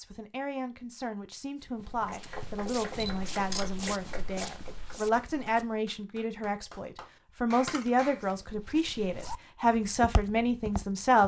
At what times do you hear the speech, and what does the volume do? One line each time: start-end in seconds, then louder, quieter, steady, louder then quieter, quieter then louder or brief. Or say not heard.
0.0-11.2 louder.